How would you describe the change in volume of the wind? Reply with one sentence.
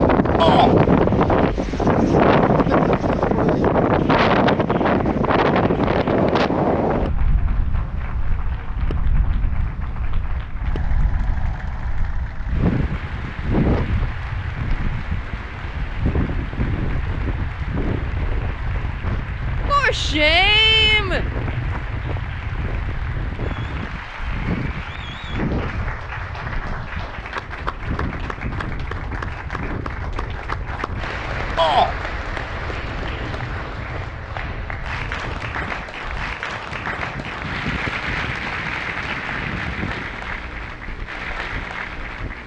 The loudness of the wind goes down.